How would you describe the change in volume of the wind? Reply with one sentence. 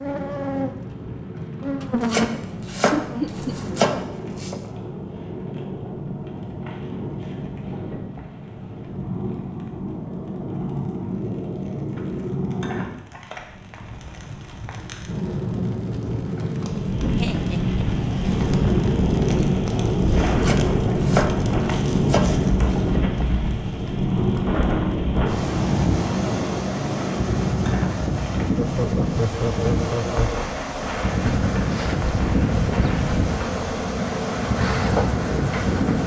The loudness of the wind stays about the same.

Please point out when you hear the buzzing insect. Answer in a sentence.
The buzzing insect can be heard from 0.0 to 4.0 s and from 30.8 to 36.0 s.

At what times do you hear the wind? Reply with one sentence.
The wind can be heard from 16.6 to 36.0 s.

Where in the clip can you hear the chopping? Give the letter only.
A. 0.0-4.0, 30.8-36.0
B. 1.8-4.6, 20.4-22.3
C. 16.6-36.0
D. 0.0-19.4
B.